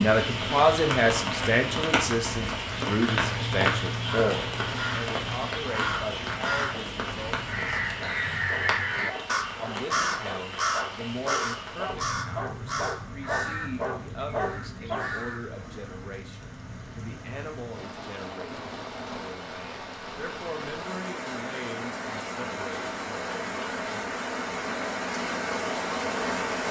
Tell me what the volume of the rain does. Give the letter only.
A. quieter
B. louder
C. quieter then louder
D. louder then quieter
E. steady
C.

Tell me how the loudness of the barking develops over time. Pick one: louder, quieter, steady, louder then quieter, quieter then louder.
louder.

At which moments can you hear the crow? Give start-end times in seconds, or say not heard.
4.0-15.4.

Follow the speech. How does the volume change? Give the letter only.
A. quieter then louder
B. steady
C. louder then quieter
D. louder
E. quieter
E.